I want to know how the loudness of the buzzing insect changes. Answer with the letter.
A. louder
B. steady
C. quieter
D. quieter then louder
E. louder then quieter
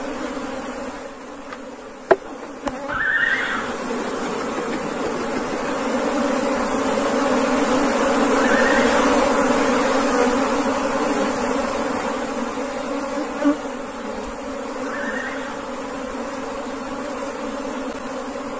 E.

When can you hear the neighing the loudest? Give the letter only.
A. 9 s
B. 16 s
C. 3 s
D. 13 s
C.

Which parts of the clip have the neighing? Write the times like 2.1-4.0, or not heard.
2.9-3.8, 8.3-9.2, 14.8-15.7.